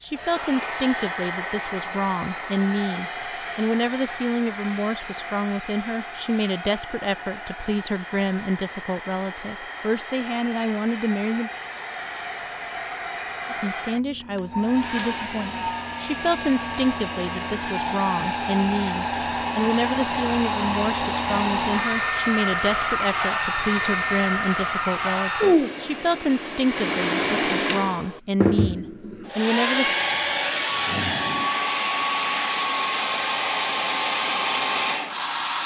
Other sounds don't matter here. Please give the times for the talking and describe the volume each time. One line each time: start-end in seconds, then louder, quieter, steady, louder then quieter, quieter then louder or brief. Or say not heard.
0.0-11.5 steady
13.5-29.9 steady.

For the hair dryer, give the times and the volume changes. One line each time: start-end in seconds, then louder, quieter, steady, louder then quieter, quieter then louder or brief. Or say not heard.
0.0-35.6 louder.